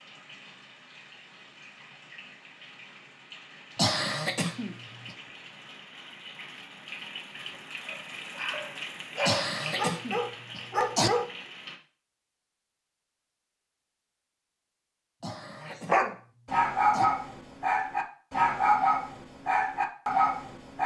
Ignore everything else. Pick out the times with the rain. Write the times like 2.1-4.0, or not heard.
0.0-11.8.